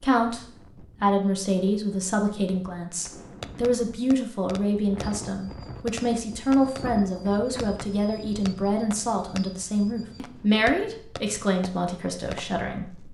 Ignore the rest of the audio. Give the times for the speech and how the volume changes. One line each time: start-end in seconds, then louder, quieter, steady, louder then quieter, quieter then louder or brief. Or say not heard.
0.0-13.0 steady.